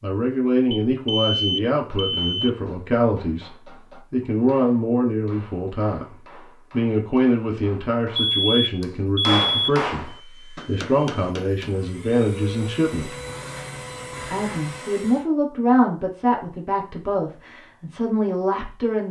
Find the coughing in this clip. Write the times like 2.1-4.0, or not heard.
not heard.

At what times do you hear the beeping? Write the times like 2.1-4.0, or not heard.
0.7-2.5, 8.2-9.8, 12.9-14.8.